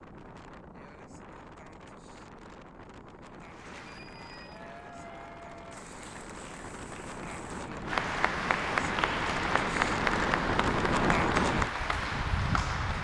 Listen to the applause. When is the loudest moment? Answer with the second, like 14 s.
10 s.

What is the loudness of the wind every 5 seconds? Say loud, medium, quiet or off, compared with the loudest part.
quiet, medium, loud.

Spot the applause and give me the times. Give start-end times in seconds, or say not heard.
3.5-12.9.